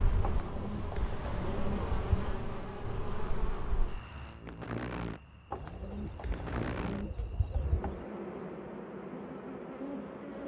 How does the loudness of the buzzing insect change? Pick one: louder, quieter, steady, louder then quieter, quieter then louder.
steady.